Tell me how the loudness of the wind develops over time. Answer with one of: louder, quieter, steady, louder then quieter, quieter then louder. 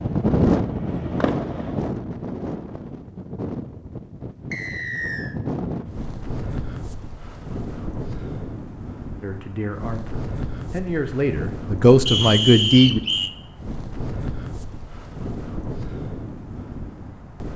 quieter.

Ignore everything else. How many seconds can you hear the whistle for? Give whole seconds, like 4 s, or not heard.
2 s.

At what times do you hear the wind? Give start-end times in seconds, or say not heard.
0.0-17.5.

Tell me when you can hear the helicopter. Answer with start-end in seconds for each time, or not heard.
0.0-1.9.